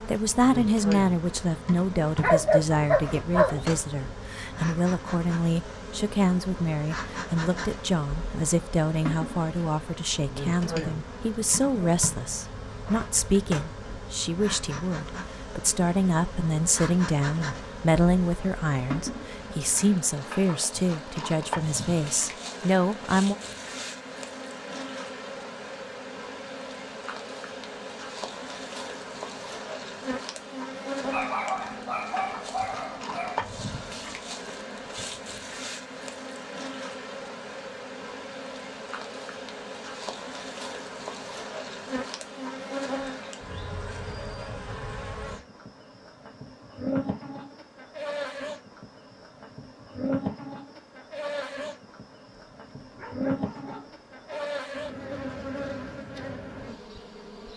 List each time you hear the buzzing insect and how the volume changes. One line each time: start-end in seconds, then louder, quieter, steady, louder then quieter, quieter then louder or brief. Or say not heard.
0.0-57.5 steady.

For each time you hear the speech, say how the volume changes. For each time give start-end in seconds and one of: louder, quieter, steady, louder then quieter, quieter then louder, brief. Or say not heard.
0.1-23.4 steady.